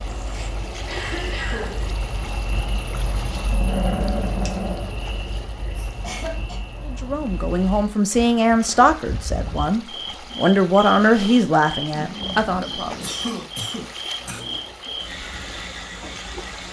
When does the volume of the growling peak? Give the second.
4 s.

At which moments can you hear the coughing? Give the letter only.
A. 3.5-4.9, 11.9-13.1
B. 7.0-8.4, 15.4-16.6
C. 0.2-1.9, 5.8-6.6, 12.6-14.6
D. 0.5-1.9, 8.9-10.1
C.